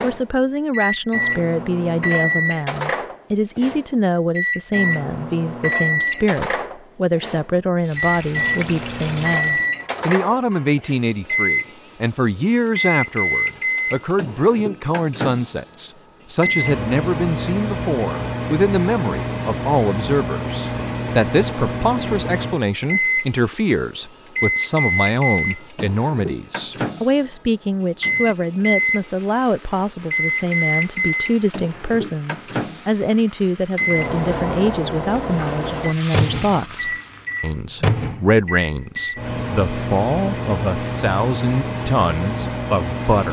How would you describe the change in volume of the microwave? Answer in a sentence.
The loudness of the microwave stays about the same.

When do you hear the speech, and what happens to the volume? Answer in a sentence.
You can hear the speech from 0.0 to 43.2 s, at a steady volume.